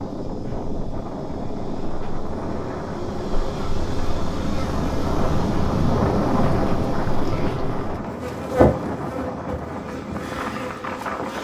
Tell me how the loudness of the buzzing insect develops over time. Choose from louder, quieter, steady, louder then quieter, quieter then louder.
louder then quieter.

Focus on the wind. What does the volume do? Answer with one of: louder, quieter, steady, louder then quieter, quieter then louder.
louder then quieter.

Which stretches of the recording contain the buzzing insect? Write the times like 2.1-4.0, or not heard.
0.0-11.4.